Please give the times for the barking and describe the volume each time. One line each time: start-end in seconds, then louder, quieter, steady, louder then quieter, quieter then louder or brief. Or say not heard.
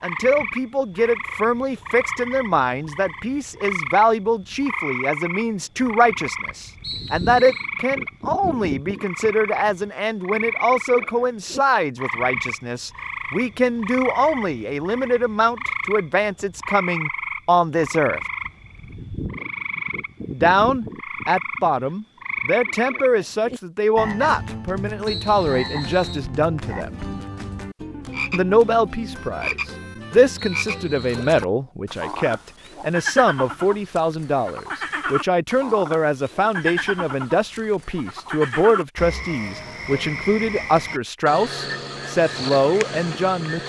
not heard.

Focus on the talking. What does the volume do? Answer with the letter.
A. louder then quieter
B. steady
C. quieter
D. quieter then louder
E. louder
B.